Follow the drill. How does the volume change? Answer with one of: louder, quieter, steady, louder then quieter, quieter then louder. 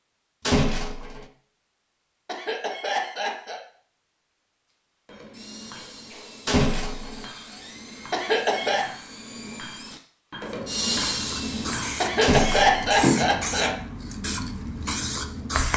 louder.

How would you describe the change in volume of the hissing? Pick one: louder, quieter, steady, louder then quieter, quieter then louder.
louder then quieter.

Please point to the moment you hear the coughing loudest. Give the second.
13 s.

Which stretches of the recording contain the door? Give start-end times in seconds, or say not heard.
0.5-1.2, 6.5-7.2, 12.2-12.8.